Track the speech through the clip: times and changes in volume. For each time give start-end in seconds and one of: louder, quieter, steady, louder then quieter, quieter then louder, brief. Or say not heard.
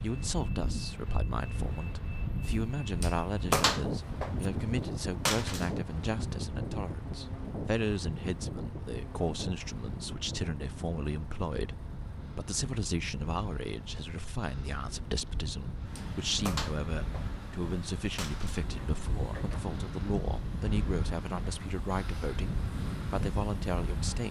0.0-24.2 steady.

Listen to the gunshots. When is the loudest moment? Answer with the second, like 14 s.
4 s.